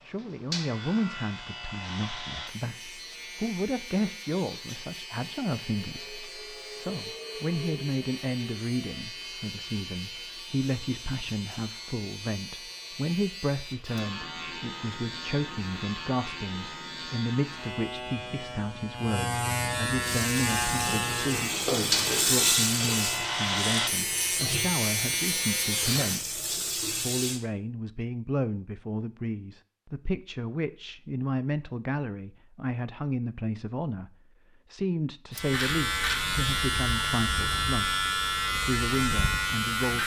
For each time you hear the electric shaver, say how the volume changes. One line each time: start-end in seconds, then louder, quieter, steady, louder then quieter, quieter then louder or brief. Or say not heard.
0.0-26.2 louder
35.3-40.0 steady.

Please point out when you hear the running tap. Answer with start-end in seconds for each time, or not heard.
20.0-27.4.